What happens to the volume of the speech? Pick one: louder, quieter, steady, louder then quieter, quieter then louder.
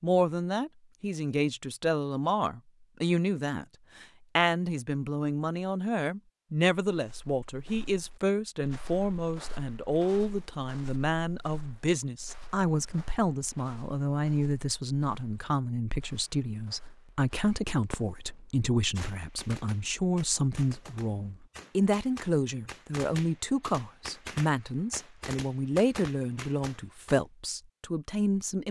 steady.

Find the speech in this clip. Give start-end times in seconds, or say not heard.
0.0-28.6.